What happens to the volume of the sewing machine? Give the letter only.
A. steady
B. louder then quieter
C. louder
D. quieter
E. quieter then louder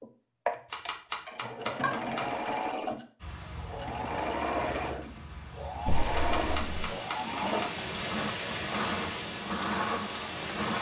A.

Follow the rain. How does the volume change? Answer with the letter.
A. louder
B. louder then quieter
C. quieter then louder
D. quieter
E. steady
A.